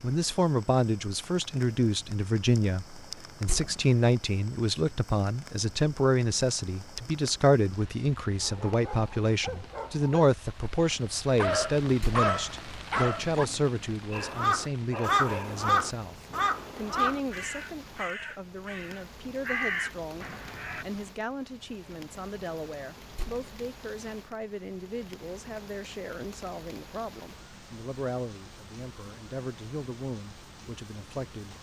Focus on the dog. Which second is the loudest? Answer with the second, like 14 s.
12 s.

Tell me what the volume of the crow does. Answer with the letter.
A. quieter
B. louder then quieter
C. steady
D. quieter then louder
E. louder
D.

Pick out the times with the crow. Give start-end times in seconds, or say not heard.
14.1-20.9.